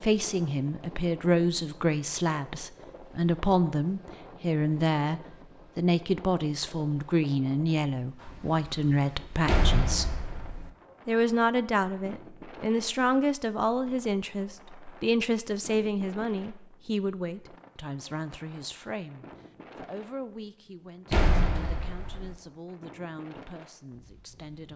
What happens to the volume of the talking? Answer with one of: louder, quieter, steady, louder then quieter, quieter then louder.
quieter.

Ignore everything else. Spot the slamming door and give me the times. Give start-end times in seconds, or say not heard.
9.4-10.7, 21.1-22.4.